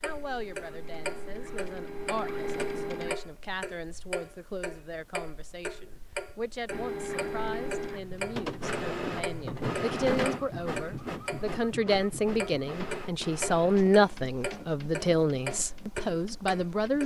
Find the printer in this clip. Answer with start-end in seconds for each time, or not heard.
0.0-3.1, 6.7-17.0.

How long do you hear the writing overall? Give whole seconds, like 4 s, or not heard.
not heard.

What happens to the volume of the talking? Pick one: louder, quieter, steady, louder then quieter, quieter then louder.
louder.